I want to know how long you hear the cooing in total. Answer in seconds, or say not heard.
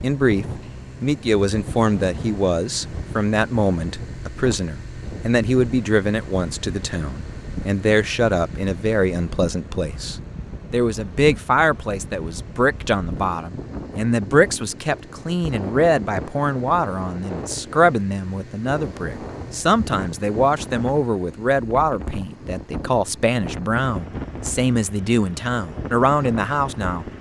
not heard.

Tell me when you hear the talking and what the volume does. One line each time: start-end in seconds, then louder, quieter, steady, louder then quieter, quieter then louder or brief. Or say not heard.
0.0-27.1 steady.